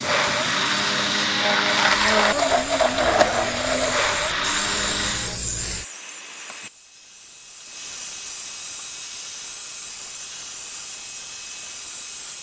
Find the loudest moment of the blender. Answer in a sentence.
The volume of the blender peaks at 2 seconds.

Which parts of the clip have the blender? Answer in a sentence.
The blender can be heard from 0.0 to 5.4 s.